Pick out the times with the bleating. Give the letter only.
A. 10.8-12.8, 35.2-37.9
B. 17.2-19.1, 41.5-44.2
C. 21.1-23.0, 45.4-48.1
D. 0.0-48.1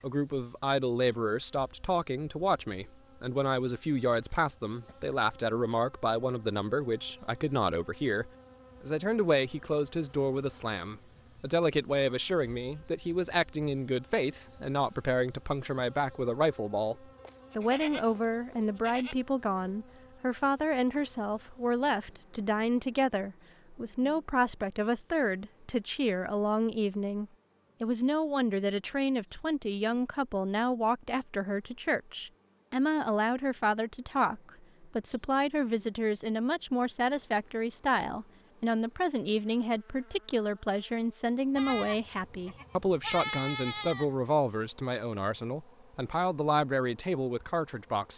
B.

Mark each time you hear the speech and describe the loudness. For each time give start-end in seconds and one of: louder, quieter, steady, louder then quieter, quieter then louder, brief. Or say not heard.
0.0-48.1 steady.